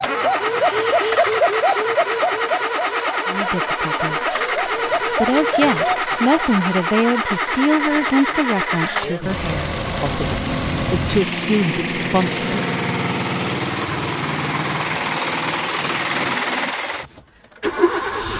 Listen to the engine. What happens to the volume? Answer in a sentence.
The loudness of the engine stays about the same.